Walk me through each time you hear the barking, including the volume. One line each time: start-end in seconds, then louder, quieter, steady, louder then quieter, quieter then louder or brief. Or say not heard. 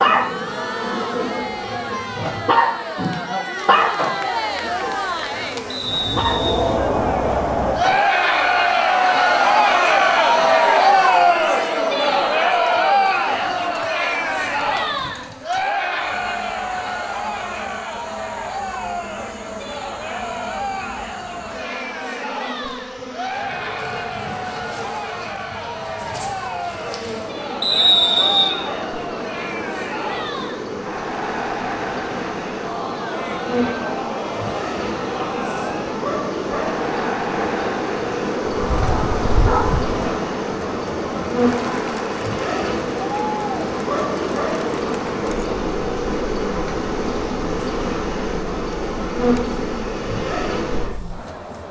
0.0-6.5 louder then quieter
38.5-40.0 brief.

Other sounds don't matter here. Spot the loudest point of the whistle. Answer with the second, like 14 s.
28 s.